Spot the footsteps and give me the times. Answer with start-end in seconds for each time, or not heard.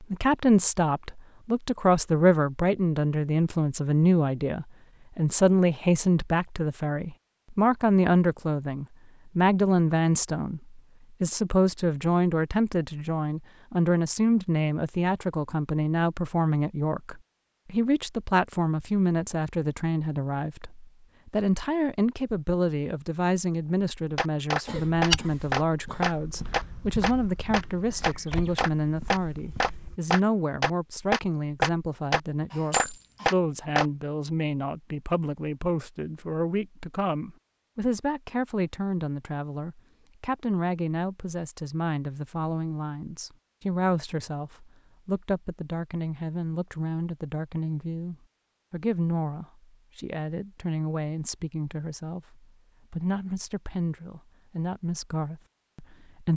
24.7-30.0.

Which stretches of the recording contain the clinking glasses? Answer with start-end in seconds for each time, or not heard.
32.7-33.3.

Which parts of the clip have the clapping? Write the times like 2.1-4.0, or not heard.
24.1-33.9.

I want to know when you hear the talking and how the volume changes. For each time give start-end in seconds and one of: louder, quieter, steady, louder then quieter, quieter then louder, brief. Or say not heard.
0.0-56.3 quieter.